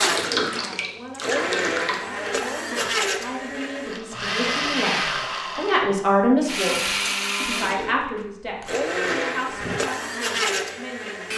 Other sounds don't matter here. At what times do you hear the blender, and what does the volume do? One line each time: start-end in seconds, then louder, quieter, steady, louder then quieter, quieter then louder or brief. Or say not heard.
0.0-11.3 steady.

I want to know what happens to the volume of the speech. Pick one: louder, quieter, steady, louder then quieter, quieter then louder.
louder then quieter.